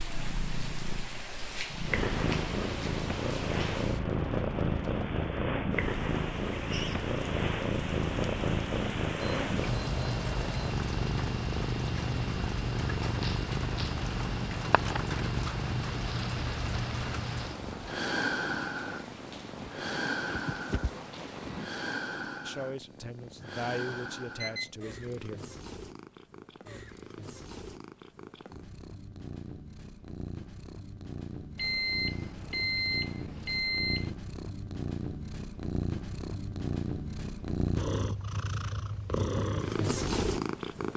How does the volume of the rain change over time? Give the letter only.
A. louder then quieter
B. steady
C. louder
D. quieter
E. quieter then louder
B.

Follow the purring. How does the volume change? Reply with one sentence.
The volume of the purring goes down, then up.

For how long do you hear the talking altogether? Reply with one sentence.
You can hear the talking for 3 seconds altogether.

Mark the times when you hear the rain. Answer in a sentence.
You can hear the rain from 0.0 to 21.7 s.